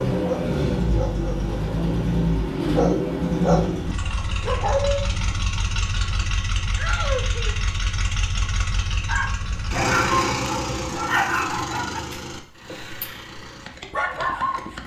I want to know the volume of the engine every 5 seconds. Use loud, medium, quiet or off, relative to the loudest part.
loud, medium, medium.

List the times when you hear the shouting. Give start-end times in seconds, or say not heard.
6.8-7.7.